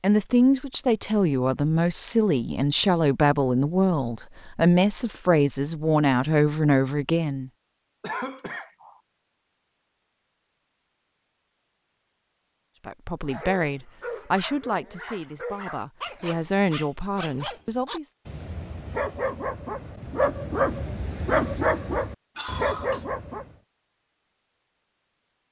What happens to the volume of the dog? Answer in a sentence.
The loudness of the dog goes up.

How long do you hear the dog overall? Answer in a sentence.
The dog can be heard for 10 seconds in total.